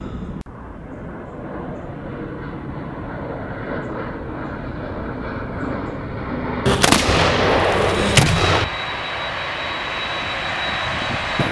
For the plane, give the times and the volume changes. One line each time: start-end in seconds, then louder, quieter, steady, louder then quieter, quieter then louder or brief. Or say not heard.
0.0-11.4 louder.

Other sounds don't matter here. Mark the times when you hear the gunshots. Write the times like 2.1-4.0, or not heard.
6.7-8.7.